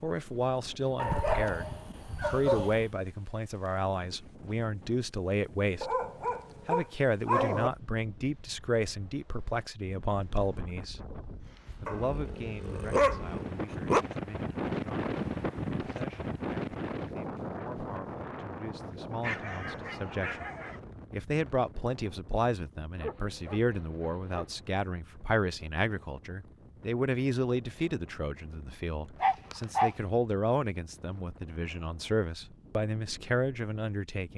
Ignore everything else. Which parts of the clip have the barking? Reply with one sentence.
You can hear the barking from 0.9 to 2.9 s, from 5.8 to 7.7 s, from 11.8 to 14.1 s, from 19.2 to 20.8 s, from 22.9 to 24.6 s and from 29.2 to 29.9 s.